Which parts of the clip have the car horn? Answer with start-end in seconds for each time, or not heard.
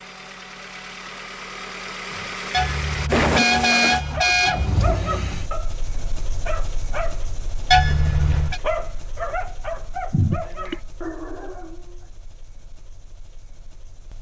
2.5-4.8, 7.7-8.6.